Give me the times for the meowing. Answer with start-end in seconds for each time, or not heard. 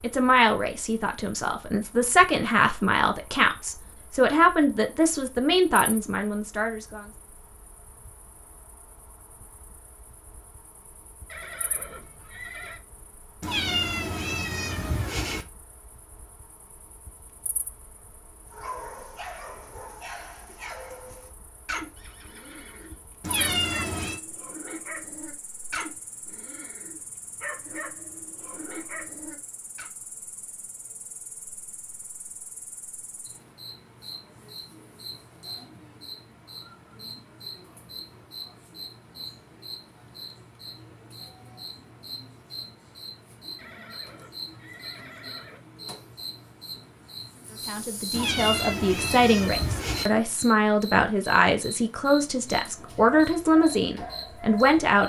13.4-15.4, 23.2-24.2, 48.1-50.0.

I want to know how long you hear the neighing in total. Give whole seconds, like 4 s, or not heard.
5 s.